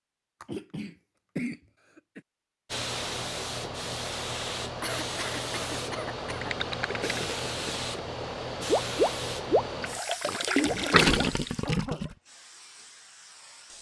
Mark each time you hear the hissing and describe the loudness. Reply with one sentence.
The hissing can be heard from 2.6 to 13.7 s, getting quieter.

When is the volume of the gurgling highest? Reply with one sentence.
The volume of the gurgling peaks at 11 seconds.